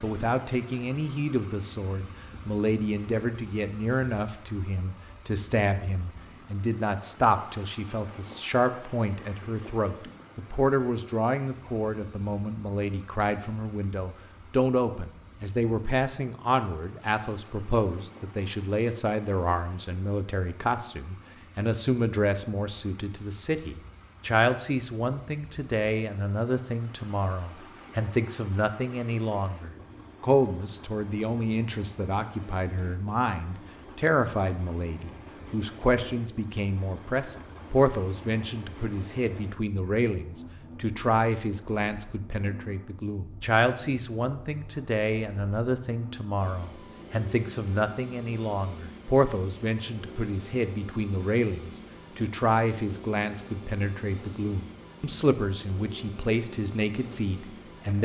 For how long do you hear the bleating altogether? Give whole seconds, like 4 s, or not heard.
not heard.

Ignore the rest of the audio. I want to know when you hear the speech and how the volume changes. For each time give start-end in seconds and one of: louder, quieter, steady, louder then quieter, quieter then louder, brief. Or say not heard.
0.0-58.0 steady.